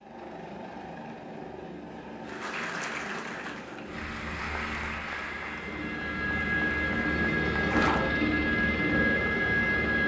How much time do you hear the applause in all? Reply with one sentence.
The applause can be heard for 6 seconds in total.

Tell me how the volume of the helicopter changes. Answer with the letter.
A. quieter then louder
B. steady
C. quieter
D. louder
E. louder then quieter
D.